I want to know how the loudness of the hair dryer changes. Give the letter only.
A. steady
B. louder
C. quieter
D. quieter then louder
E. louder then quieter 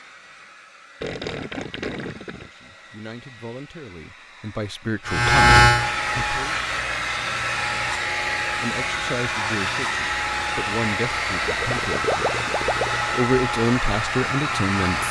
B.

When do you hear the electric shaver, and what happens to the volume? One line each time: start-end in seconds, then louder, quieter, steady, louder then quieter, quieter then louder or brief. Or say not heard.
5.0-15.0 quieter.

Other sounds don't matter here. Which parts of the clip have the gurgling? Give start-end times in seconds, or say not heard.
1.0-2.5, 11.4-13.1.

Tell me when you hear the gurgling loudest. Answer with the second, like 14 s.
12 s.